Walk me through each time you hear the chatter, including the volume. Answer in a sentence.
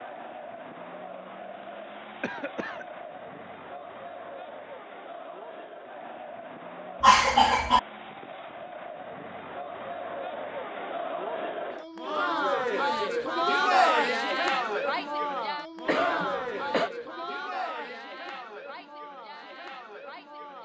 The chatter can be heard from 0.0 to 20.5 s, getting louder then quieter.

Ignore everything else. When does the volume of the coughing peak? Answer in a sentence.
The loudest moment of the coughing is at 7 seconds.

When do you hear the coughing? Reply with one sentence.
The coughing can be heard from 2.2 to 2.9 s, from 7.0 to 7.8 s and from 15.8 to 16.9 s.